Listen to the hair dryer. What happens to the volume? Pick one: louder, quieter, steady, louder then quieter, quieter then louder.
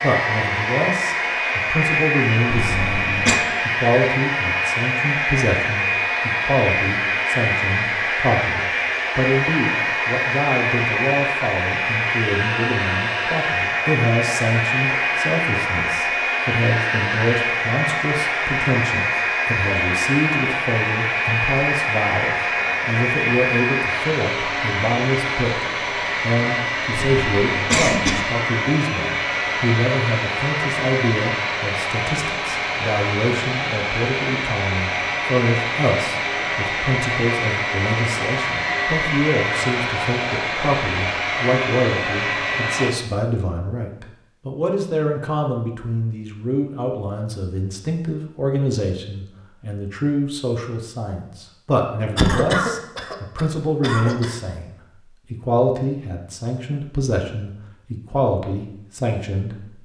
steady.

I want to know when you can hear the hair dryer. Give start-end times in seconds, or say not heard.
0.0-43.0.